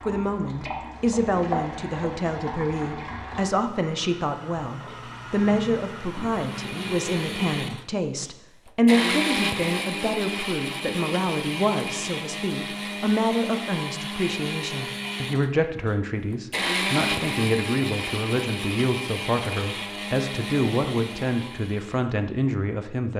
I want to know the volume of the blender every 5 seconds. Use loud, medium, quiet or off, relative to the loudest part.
off, loud, loud, loud, medium.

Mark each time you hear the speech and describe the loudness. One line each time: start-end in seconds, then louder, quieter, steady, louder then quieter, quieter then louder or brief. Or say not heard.
0.1-23.1 steady.